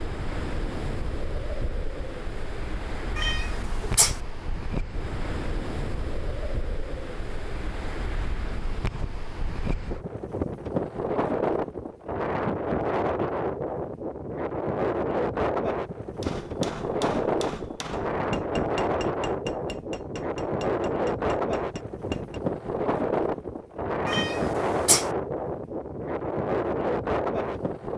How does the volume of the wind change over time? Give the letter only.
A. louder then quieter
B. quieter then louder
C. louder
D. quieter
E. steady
C.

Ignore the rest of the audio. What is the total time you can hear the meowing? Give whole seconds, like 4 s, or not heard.
2 s.